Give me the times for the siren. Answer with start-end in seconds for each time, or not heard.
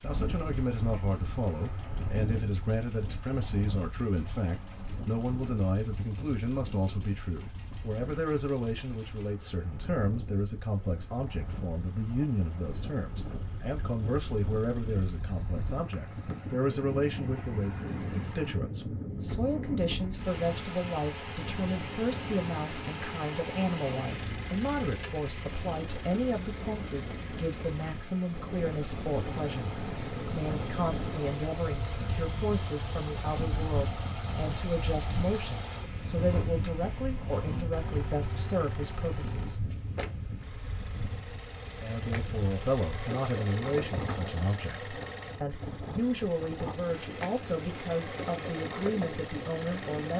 not heard.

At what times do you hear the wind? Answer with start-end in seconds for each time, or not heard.
0.0-50.1.